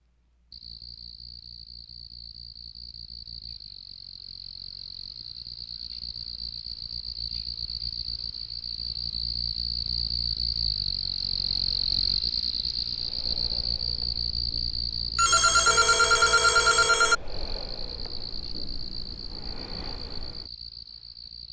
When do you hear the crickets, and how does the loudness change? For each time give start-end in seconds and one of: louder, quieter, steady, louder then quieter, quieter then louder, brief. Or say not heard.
0.0-21.4 louder then quieter.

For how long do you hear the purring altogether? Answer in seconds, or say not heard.
not heard.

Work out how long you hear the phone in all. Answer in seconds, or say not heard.
2 s.